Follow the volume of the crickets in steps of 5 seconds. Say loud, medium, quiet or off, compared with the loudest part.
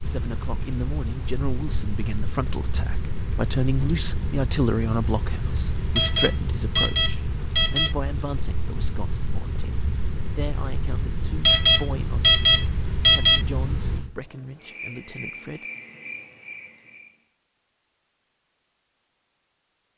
loud, loud, loud, quiet.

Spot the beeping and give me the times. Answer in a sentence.
The beeping can be heard from 6.0 to 8.0 s and from 11.4 to 13.4 s.